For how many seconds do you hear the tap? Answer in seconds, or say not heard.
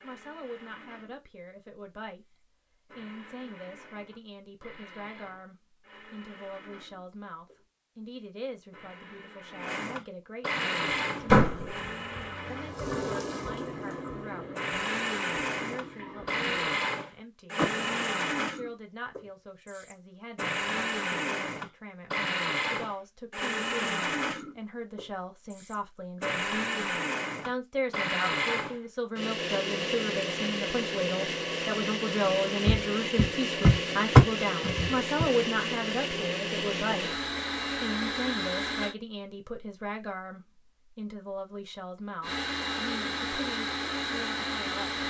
6 s.